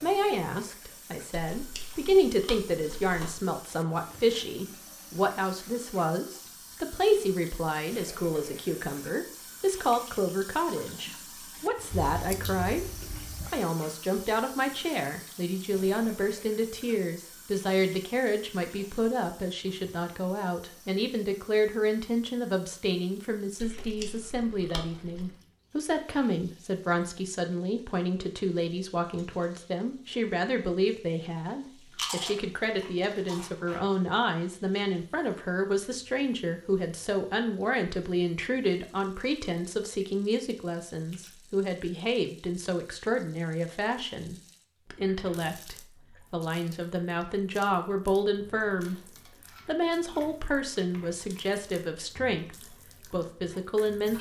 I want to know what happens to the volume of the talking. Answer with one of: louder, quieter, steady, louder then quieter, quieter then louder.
steady.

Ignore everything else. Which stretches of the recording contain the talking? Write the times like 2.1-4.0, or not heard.
0.0-54.1.